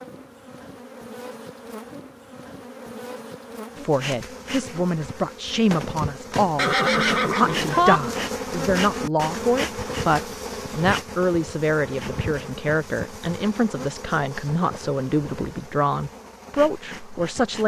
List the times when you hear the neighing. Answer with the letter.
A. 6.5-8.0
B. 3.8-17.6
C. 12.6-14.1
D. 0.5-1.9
A.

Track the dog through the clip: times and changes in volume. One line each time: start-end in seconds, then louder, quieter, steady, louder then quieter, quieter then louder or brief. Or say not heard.
not heard.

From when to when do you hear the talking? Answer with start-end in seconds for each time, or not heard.
3.8-17.6.